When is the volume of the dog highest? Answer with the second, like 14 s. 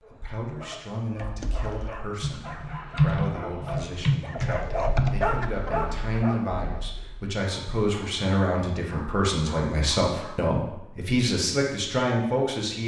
5 s.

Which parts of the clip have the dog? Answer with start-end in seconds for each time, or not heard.
0.0-10.4.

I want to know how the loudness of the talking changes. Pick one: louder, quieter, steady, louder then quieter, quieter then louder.
louder.